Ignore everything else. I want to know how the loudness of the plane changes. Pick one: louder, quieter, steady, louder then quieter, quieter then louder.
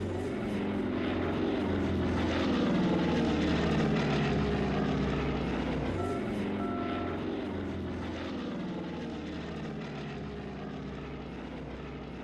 quieter.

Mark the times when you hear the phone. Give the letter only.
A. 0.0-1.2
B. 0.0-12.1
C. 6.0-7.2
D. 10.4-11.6
C.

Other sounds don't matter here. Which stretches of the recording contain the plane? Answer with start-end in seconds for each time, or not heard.
0.0-12.1.